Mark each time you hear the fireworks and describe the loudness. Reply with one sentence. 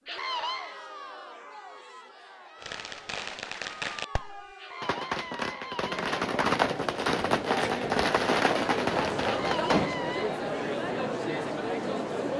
The fireworks can be heard from 2.6 to 9.9 s, getting louder.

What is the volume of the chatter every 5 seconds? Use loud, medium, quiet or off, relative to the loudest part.
quiet, loud, loud.